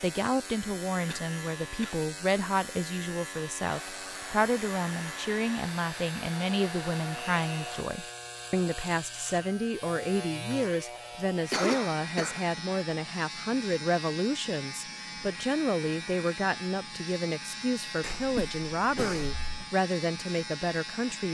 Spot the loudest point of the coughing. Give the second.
12 s.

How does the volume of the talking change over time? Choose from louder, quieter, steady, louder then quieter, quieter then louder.
steady.